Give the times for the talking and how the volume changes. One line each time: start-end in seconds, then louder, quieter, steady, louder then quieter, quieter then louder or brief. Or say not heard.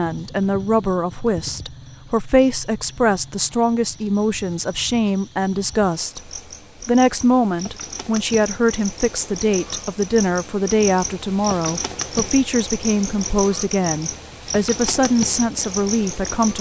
0.0-16.5 steady.